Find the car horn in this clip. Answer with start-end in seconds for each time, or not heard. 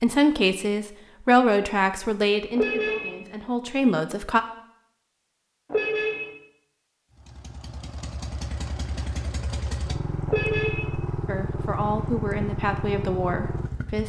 2.5-3.1, 5.7-6.3, 10.2-10.9.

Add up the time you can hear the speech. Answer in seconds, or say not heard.
7 s.